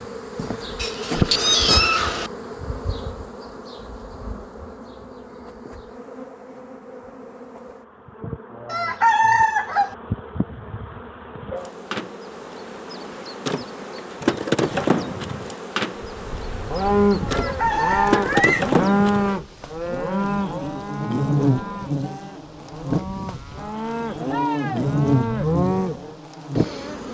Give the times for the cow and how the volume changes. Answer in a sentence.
The cow can be heard from 16.0 to 26.1 s, getting quieter then louder.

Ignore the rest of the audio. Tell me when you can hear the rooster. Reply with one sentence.
The rooster can be heard from 8.7 to 9.9 s and from 17.2 to 18.4 s.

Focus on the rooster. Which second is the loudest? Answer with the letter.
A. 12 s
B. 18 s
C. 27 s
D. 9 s
D.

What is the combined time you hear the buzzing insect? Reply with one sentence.
You can hear the buzzing insect for 27 seconds altogether.